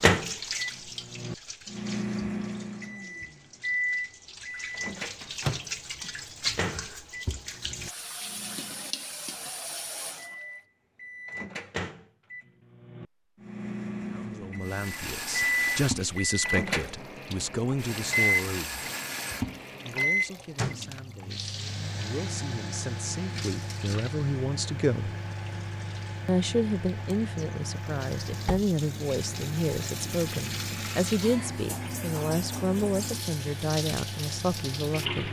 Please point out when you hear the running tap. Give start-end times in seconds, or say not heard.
0.0-10.5, 14.6-35.2.